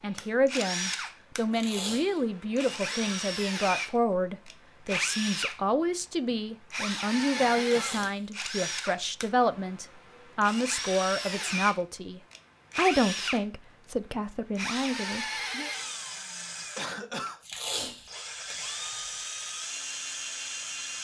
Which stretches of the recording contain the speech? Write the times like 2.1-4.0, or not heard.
0.0-15.7.